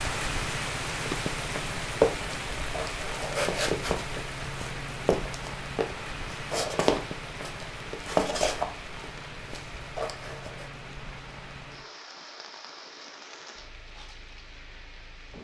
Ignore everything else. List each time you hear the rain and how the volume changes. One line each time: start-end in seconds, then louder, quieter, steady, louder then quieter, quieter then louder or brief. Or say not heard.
0.0-15.3 quieter.